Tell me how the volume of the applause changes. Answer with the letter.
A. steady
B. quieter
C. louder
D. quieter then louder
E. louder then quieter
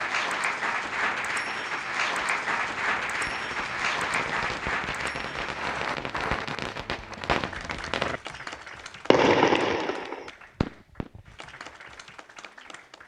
B.